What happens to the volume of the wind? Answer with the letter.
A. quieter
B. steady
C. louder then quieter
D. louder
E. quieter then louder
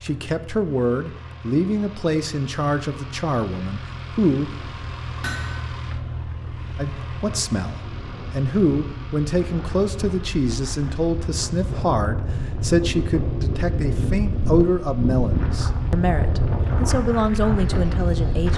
D.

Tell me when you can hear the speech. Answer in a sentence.
The speech can be heard from 0.0 to 4.7 s and from 6.8 to 18.5 s.